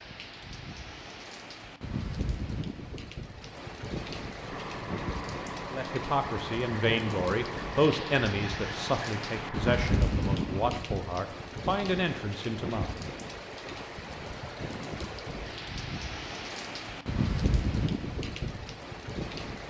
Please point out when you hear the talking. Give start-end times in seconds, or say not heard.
5.7-13.1.